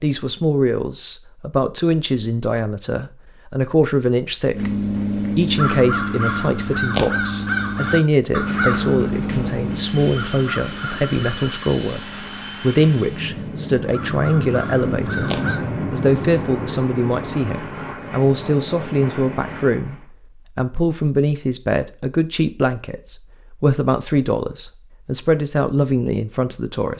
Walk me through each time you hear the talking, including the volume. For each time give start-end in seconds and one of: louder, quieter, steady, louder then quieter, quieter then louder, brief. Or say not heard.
0.0-12.0 steady
12.6-26.9 steady.